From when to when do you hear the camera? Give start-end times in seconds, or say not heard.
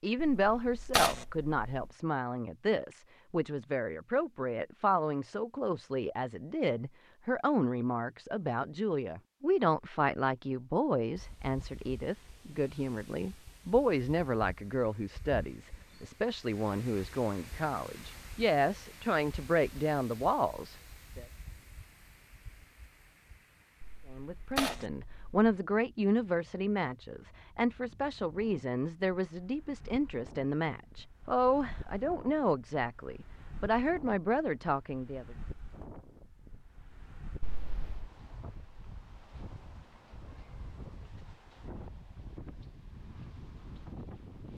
0.2-1.6, 23.8-25.3, 37.4-38.1.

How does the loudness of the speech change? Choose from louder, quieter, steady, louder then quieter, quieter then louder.
steady.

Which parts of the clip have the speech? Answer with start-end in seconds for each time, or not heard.
0.0-21.2, 24.1-35.4.